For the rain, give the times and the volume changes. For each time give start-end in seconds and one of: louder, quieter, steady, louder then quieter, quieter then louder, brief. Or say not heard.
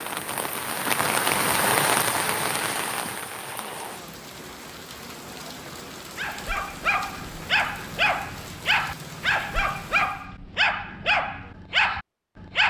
0.0-10.3 quieter.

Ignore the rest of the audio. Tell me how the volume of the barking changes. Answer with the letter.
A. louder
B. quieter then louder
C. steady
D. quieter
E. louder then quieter
C.